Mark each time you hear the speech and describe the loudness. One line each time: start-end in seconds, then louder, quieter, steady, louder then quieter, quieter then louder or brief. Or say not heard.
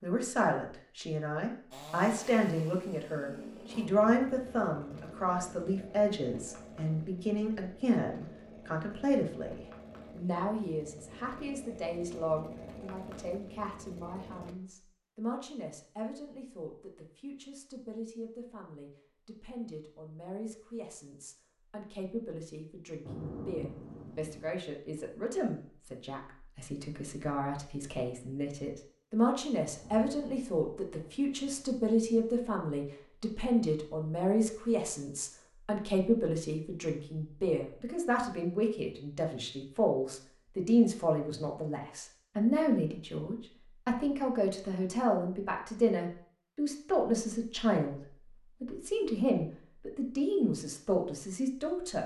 0.0-52.0 quieter then louder.